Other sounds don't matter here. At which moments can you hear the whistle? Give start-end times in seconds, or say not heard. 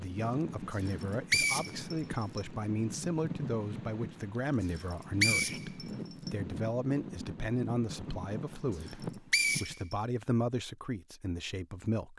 0.8-2.4, 4.8-6.3, 8.8-9.9.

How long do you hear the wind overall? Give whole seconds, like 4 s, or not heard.
10 s.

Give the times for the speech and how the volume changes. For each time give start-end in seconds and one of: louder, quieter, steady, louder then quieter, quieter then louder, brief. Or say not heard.
0.0-12.1 steady.